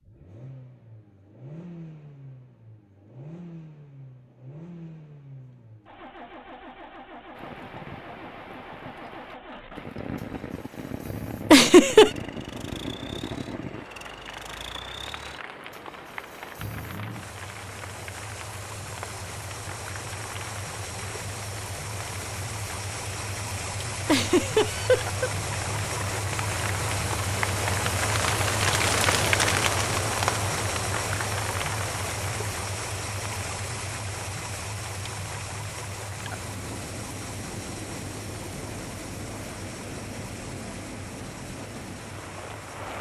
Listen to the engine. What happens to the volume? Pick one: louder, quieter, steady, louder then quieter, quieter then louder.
louder then quieter.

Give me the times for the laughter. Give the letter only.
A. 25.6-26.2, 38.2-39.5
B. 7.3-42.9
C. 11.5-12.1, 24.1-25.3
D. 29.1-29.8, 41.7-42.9
C.